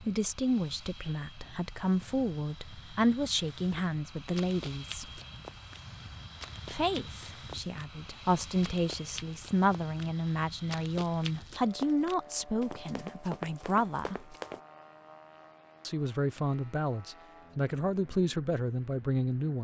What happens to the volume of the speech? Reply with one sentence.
The volume of the speech stays about the same.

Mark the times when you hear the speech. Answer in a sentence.
The speech can be heard from 0.0 to 5.2 s, from 6.7 to 14.3 s and from 15.8 to 19.5 s.